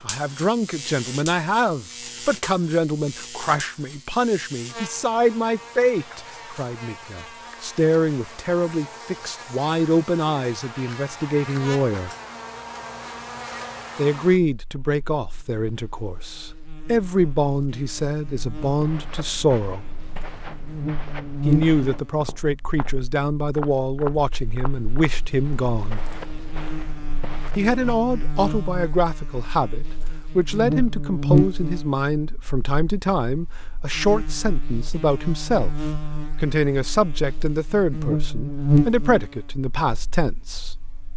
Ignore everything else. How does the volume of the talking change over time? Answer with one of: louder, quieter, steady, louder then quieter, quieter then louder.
steady.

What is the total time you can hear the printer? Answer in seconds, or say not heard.
not heard.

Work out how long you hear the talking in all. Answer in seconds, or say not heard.
35 s.